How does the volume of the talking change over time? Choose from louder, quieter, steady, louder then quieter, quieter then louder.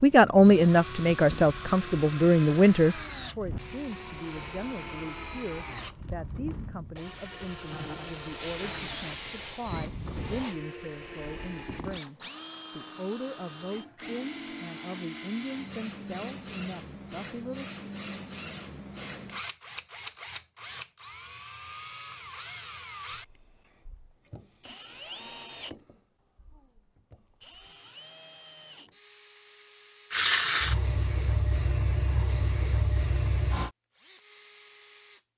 quieter.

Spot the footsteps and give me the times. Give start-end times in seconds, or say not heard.
not heard.